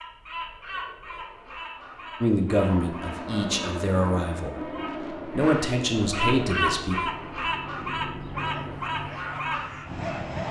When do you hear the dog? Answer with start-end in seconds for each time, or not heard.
8.4-10.4.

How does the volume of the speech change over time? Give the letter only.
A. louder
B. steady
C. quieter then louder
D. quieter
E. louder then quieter
C.